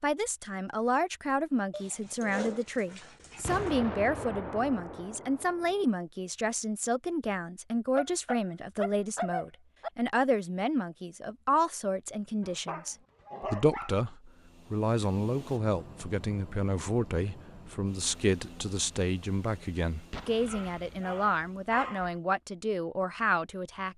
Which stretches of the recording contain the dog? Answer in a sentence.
You can hear the dog from 1.7 to 3.8 s, from 8.0 to 9.9 s, from 12.4 to 13.9 s and from 20.4 to 22.2 s.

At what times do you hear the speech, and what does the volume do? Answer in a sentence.
You can hear the speech from 0.0 to 23.9 s, at a steady volume.